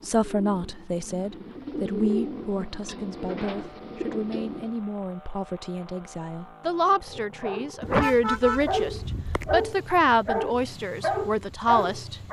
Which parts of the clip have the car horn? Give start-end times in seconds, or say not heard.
7.8-9.6.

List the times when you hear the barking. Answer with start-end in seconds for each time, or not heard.
7.1-8.0, 8.7-12.2.